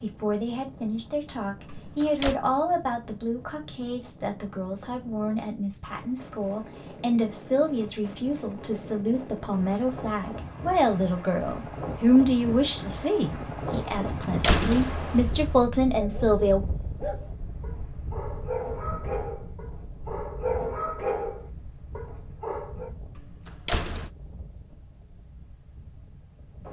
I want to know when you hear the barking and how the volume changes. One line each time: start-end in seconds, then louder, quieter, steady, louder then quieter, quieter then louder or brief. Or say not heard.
15.9-22.9 louder then quieter.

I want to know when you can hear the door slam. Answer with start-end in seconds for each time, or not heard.
1.6-2.4, 14.1-15.7, 23.1-24.1.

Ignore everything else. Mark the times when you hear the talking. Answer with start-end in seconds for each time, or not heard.
0.0-16.6.